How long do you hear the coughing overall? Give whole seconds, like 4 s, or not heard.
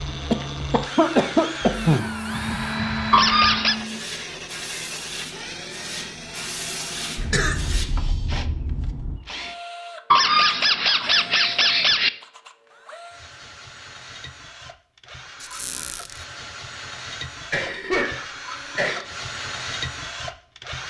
5 s.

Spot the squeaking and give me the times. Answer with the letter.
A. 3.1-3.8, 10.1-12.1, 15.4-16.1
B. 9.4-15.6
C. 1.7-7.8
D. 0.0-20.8
A.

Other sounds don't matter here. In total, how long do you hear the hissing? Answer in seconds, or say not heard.
6 s.